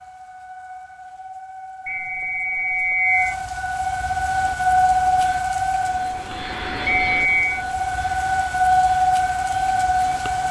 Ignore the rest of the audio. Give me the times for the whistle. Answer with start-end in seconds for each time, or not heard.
1.9-3.4, 6.8-7.7.